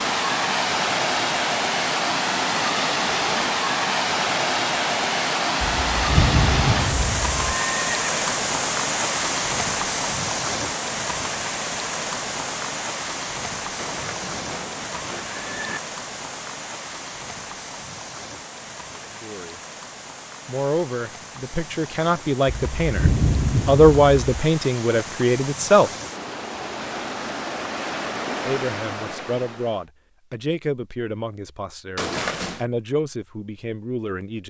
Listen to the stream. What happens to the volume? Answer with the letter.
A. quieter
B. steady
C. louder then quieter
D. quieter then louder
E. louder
D.